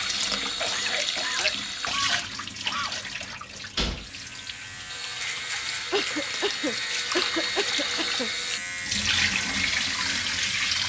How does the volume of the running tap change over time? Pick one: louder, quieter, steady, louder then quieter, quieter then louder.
quieter then louder.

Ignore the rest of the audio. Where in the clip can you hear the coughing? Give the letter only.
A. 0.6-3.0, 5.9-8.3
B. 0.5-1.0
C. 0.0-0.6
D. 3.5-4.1
A.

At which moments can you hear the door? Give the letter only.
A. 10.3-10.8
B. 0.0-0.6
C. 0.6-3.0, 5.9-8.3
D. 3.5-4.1
D.